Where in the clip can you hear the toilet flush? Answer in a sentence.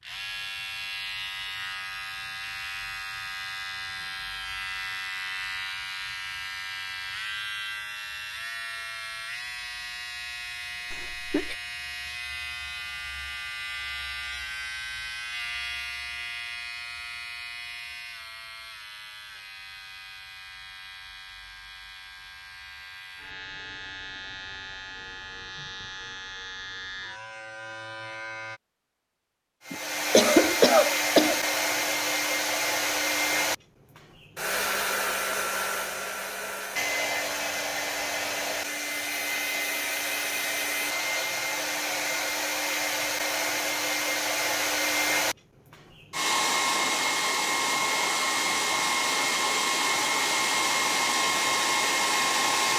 You can't hear the toilet flush here.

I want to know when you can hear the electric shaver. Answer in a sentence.
You can hear the electric shaver from 0.0 to 28.6 s.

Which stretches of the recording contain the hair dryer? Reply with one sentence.
You can hear the hair dryer from 29.6 to 52.7 s.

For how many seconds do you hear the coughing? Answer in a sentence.
The coughing can be heard for 2 seconds in total.